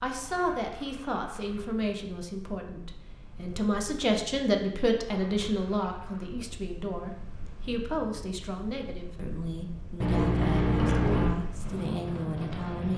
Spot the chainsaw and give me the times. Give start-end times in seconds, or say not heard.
not heard.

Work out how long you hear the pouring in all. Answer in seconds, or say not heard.
4 s.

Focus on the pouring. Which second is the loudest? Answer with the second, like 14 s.
11 s.